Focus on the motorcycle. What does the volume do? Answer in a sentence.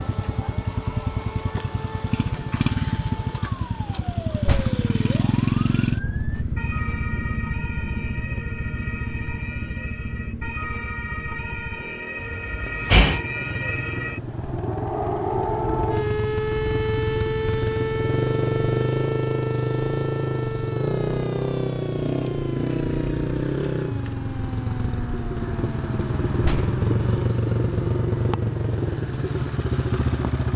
The volume of the motorcycle goes down, then up.